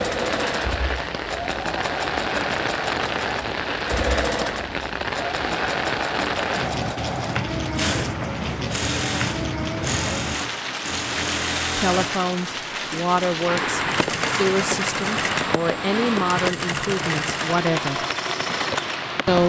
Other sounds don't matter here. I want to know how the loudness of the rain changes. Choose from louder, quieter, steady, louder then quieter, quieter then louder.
steady.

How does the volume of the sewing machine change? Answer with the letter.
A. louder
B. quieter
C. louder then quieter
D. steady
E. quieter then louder
D.